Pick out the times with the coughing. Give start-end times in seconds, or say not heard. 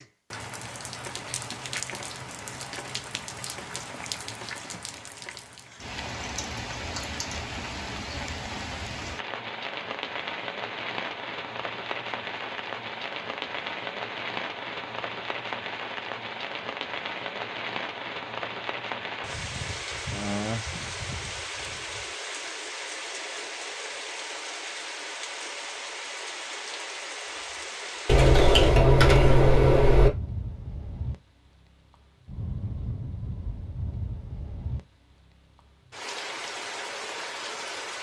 not heard.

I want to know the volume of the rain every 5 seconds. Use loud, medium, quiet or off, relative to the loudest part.
loud, loud, loud, loud, loud, loud, medium, loud.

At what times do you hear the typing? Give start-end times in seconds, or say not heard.
5.8-7.4, 28.1-30.1.